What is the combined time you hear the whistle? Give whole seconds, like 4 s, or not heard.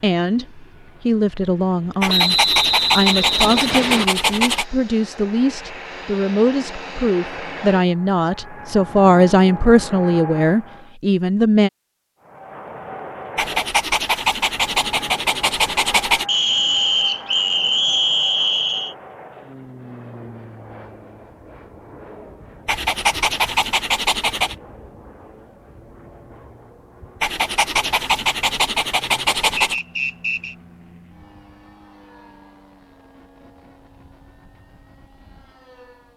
6 s.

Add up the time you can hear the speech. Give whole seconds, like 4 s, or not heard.
12 s.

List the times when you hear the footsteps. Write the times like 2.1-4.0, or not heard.
not heard.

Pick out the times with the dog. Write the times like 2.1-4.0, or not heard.
2.0-4.7, 13.3-16.2, 22.6-24.6, 27.2-29.8.